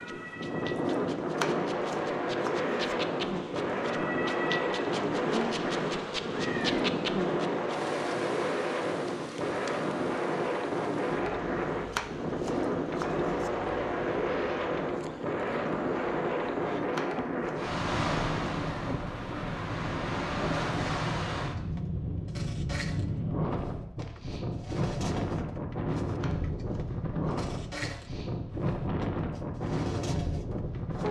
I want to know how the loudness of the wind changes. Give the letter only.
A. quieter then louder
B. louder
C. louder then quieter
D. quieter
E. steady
E.